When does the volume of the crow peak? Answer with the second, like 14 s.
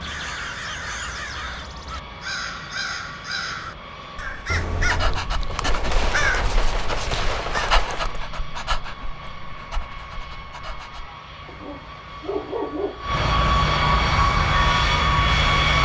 6 s.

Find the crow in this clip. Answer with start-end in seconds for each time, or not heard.
0.0-7.8.